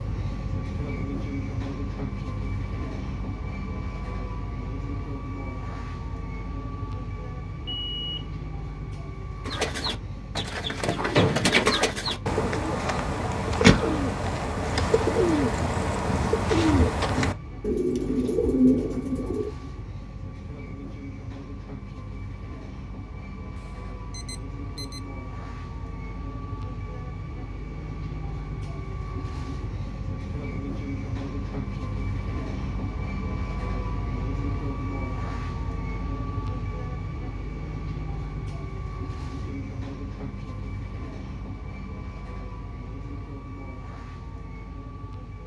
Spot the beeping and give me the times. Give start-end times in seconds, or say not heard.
7.7-8.2, 23.6-25.0.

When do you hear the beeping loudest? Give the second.
8 s.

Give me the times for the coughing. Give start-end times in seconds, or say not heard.
not heard.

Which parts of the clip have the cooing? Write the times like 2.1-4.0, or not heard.
9.4-19.5.